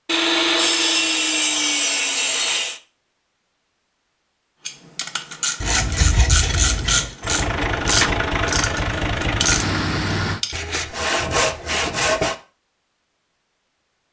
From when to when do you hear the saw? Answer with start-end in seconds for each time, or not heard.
0.1-2.8, 5.6-7.2, 10.5-12.3.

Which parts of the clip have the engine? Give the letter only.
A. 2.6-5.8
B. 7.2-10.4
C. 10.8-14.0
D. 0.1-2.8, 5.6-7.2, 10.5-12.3
B.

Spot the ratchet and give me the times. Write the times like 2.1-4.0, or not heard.
4.7-10.6.